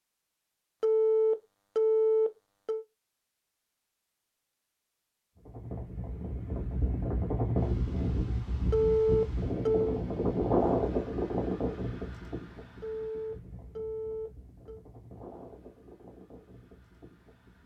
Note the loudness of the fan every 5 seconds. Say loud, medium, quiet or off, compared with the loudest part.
off, loud, loud, quiet.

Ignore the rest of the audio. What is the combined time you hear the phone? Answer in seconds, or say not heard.
5 s.